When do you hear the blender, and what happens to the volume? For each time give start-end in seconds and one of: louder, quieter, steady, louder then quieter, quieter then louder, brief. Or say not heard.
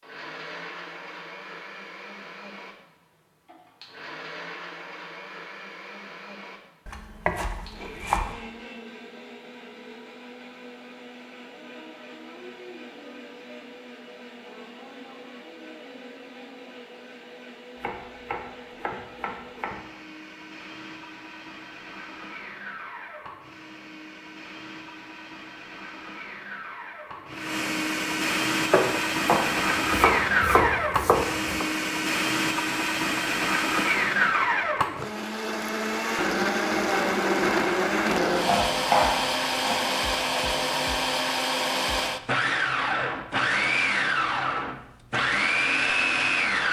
0.0-46.6 louder.